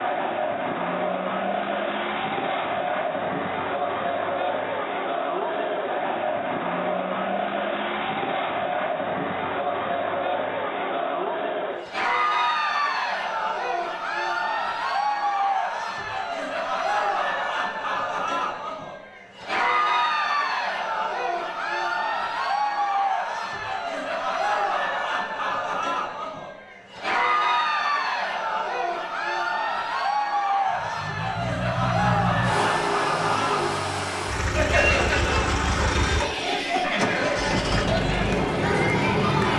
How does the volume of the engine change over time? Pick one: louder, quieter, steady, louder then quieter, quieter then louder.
steady.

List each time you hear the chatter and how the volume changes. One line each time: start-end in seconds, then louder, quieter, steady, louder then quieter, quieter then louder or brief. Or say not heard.
0.0-39.5 steady.